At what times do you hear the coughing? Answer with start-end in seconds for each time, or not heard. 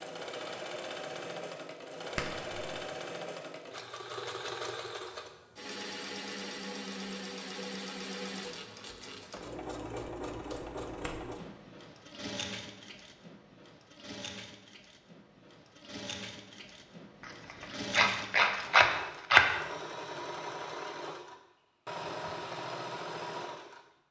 not heard.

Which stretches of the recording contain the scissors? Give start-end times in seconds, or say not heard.
2.1-2.8, 10.2-11.2, 17.2-19.4.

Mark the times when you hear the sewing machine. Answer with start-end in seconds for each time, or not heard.
0.0-23.8.